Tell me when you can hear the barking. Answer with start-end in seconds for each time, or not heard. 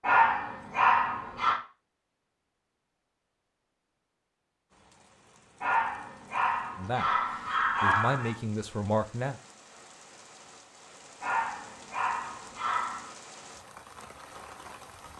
0.0-1.6, 5.6-8.3, 11.2-13.2.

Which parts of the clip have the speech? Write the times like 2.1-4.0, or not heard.
6.8-9.3.